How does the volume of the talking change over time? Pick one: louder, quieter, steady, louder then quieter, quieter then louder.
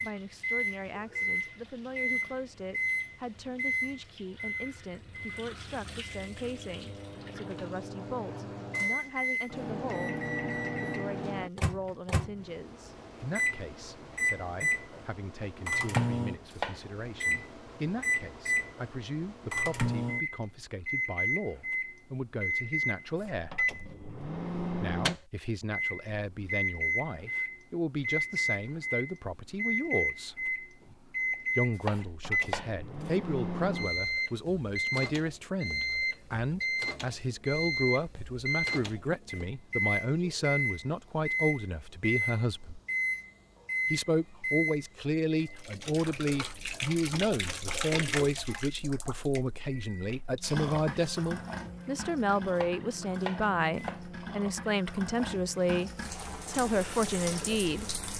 louder.